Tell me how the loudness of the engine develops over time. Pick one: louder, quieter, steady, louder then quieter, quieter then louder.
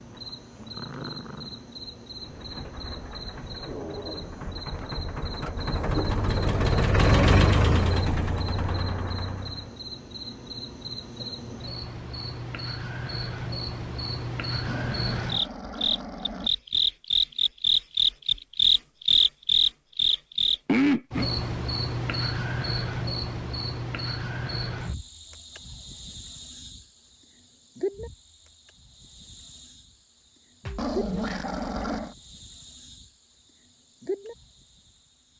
louder then quieter.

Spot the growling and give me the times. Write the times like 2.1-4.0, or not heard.
0.6-1.6, 14.5-16.5, 30.6-32.1.